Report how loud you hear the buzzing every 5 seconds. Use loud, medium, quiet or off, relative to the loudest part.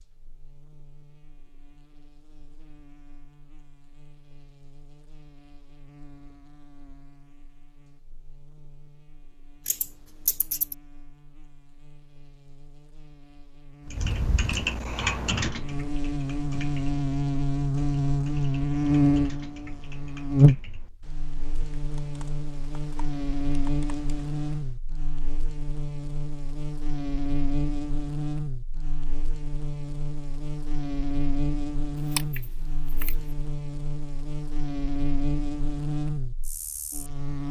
quiet, quiet, quiet, loud, loud, medium, medium, medium.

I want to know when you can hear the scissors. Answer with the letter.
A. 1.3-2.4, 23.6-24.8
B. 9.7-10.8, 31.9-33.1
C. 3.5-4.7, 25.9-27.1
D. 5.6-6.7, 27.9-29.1
B.